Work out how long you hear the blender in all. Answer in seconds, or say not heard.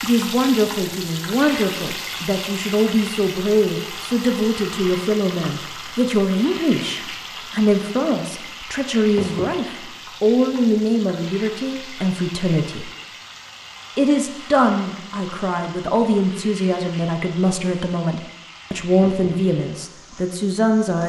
not heard.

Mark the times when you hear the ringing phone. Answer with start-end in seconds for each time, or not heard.
not heard.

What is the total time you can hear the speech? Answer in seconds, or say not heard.
20 s.